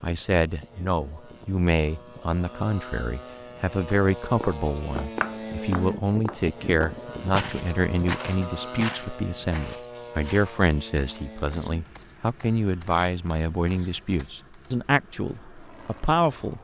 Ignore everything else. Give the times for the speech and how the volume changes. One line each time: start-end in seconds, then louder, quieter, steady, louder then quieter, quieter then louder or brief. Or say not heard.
0.0-16.5 steady.